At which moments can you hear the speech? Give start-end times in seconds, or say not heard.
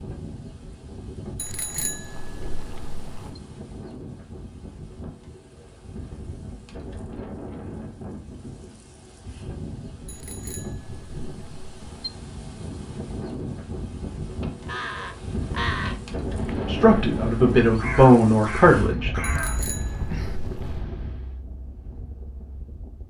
16.6-19.1.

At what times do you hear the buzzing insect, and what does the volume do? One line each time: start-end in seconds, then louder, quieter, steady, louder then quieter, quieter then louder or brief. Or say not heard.
not heard.